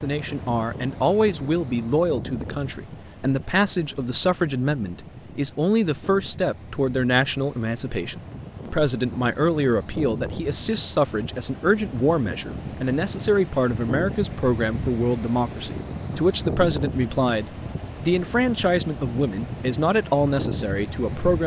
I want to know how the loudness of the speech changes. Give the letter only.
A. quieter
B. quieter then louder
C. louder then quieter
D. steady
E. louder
D.